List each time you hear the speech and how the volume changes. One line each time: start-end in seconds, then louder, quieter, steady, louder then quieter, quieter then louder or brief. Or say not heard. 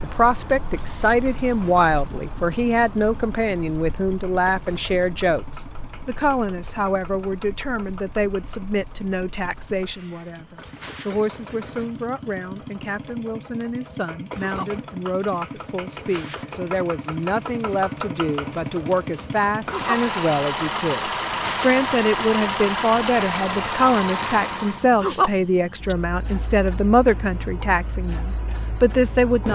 0.0-29.5 quieter then louder.